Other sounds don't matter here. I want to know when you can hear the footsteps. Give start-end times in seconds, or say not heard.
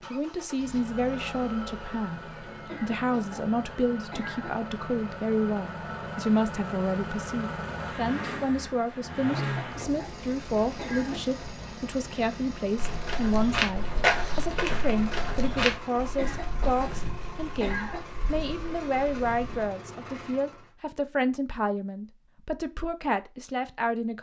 12.8-19.7.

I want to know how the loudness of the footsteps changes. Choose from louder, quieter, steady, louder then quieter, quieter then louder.
quieter.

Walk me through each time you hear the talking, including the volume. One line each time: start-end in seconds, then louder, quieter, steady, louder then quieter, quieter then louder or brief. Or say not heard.
0.1-24.1 steady.